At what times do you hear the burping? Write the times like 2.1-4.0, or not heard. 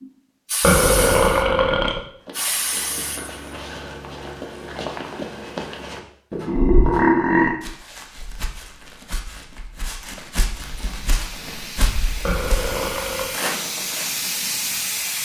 0.6-2.0, 6.5-7.5, 12.2-13.3.